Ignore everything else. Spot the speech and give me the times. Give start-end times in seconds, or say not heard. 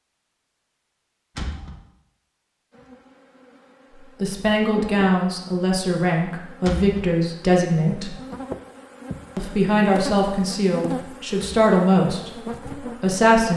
4.2-8.2, 9.3-13.5.